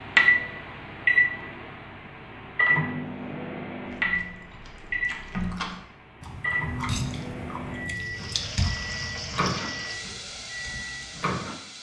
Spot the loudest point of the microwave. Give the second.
1 s.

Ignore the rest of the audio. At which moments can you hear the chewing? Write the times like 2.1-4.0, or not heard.
3.9-9.6.